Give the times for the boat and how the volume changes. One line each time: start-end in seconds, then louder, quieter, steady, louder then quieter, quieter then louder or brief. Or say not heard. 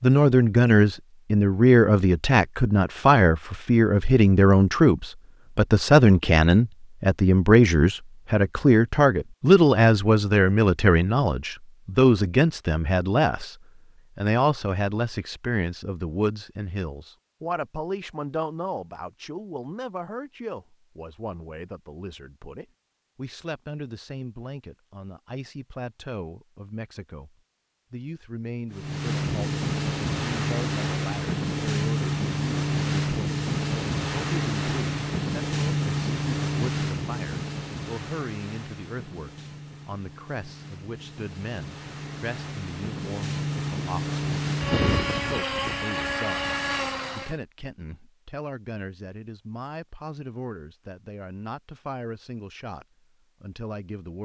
28.7-47.4 quieter then louder.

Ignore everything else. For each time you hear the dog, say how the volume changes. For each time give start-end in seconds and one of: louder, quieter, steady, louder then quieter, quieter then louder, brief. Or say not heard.
not heard.